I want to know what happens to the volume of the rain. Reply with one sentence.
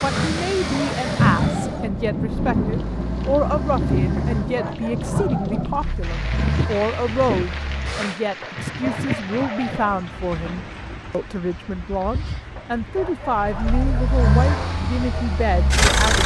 The loudness of the rain goes down.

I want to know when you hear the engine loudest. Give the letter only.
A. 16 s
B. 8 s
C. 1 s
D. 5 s
A.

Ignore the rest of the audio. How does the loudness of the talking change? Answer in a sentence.
The volume of the talking stays about the same.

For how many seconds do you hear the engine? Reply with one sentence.
The engine can be heard for 11 seconds in total.